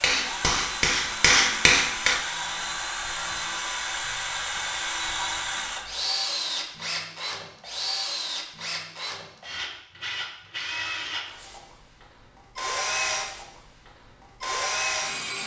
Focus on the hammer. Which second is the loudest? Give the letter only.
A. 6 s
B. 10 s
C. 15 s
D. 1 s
D.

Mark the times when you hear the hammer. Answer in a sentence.
The hammer can be heard from 0.0 to 2.1 s.